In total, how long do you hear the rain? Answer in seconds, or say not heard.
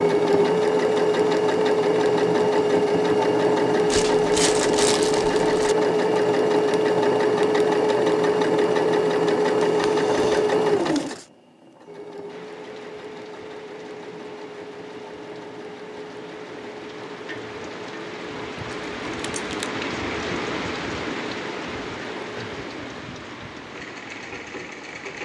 13 s.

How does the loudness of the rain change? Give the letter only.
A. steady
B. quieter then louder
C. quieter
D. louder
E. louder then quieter
E.